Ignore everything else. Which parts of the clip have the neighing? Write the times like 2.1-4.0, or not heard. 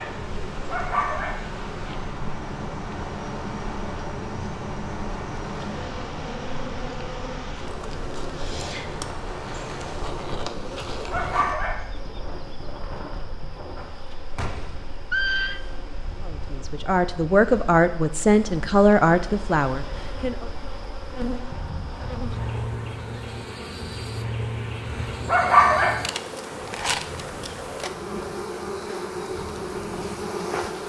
14.3-15.6.